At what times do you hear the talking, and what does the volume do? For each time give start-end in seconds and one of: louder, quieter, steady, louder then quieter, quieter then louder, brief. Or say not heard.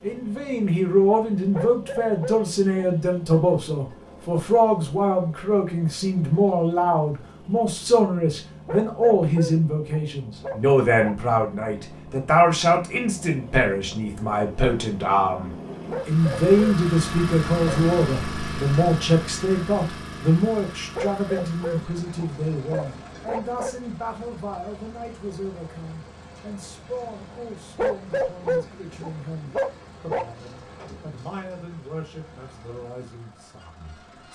0.0-34.2 quieter.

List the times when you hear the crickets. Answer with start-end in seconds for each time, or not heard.
not heard.